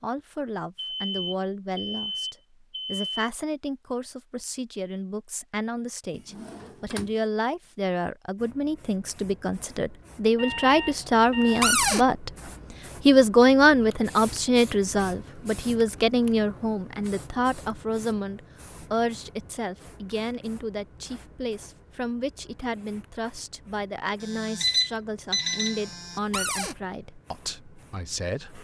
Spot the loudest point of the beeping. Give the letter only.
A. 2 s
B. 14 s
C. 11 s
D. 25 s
D.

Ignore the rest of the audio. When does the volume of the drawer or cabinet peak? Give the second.
12 s.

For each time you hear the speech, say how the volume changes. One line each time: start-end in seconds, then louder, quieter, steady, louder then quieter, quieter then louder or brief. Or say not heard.
0.0-12.3 louder
13.1-28.5 quieter.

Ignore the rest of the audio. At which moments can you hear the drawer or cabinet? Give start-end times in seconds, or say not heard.
6.1-7.2, 11.6-12.1, 26.3-26.8.